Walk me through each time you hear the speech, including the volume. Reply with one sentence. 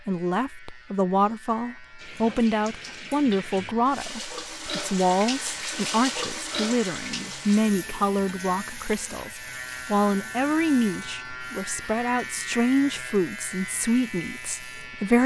You can hear the speech from 0.1 to 15.2 s, at a steady volume.